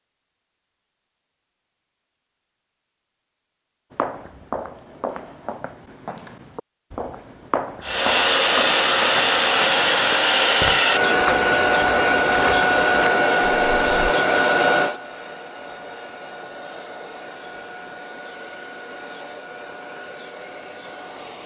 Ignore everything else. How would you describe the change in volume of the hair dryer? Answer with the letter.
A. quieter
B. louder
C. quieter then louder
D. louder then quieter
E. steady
A.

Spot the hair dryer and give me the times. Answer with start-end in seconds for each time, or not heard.
7.8-21.4.